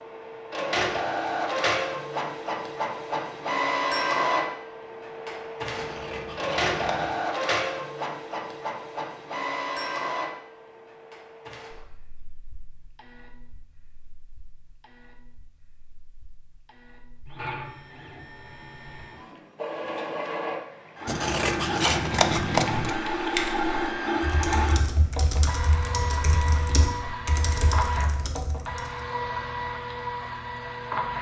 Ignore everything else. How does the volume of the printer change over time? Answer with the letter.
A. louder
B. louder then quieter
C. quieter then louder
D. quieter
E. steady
C.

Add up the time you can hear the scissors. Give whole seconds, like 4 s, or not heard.
3 s.